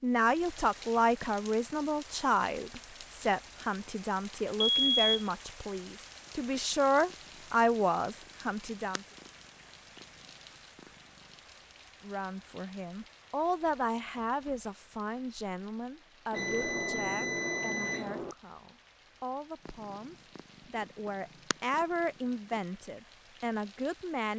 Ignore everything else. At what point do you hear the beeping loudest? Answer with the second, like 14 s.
5 s.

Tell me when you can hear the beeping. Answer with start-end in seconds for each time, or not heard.
4.7-5.2, 16.3-18.4.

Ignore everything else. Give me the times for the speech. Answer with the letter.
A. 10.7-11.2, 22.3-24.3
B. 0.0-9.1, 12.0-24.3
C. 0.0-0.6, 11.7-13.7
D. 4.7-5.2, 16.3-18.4
B.